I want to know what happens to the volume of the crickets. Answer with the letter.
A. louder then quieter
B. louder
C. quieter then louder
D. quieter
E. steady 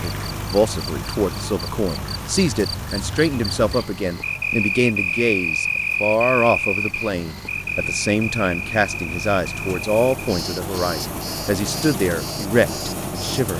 A.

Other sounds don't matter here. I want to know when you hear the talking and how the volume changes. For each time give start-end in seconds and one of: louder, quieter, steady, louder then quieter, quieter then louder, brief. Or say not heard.
0.0-13.5 steady.